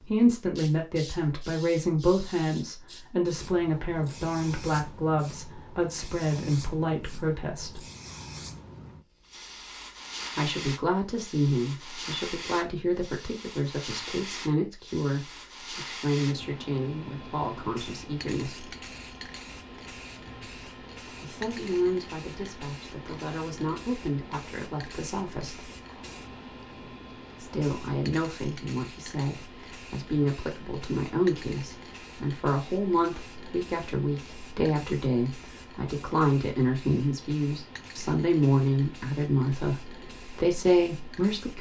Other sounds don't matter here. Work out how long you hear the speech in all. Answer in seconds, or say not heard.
35 s.